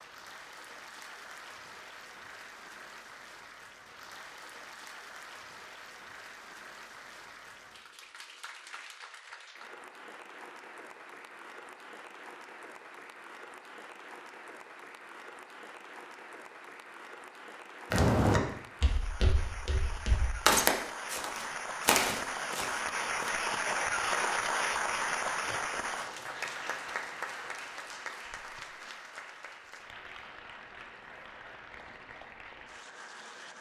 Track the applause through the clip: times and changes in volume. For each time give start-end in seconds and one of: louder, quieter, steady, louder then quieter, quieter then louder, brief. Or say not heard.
0.0-33.5 louder then quieter.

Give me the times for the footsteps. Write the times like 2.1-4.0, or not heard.
17.9-23.3.